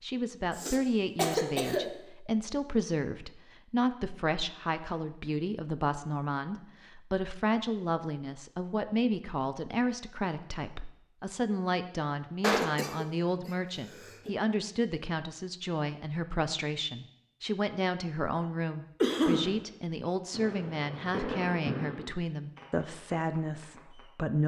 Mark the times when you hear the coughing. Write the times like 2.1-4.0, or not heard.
0.6-1.9, 12.4-14.3, 19.0-19.5.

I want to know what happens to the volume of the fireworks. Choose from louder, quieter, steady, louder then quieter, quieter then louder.
louder then quieter.